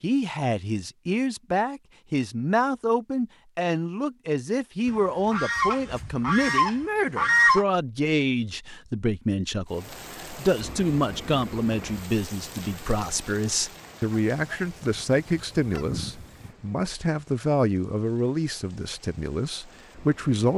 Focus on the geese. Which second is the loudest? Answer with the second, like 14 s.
7 s.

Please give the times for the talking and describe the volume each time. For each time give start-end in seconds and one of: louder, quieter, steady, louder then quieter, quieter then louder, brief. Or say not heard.
0.0-20.5 steady.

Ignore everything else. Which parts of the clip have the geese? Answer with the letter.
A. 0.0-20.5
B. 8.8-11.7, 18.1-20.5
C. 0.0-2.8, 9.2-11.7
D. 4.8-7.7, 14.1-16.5
D.